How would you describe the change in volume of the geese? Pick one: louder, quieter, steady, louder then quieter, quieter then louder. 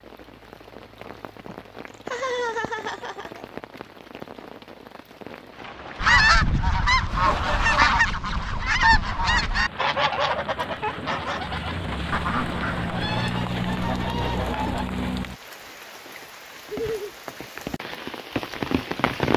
quieter.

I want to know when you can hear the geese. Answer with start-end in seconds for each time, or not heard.
6.0-14.8.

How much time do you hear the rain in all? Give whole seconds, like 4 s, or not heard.
19 s.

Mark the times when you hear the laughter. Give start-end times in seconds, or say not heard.
1.4-3.5, 7.0-8.0, 16.7-17.1.